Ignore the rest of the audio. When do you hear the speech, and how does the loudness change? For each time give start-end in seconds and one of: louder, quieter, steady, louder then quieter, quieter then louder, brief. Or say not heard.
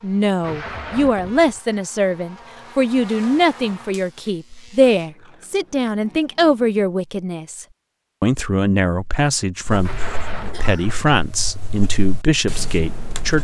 0.0-13.3 steady.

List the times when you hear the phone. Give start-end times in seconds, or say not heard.
not heard.